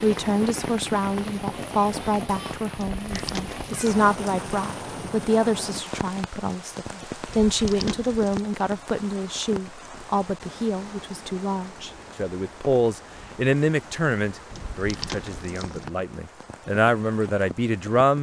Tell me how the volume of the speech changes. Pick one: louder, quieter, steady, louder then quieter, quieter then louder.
steady.